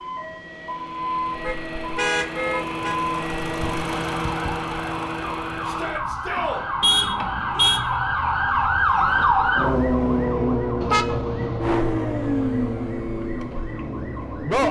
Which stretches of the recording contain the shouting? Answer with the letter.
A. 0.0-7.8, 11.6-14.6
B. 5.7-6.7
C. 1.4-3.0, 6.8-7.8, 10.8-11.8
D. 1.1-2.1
B.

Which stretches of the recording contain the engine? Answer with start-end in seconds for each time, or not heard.
0.0-7.8, 11.6-14.6.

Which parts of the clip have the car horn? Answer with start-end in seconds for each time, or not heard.
1.4-3.0, 6.8-7.8, 10.8-11.8.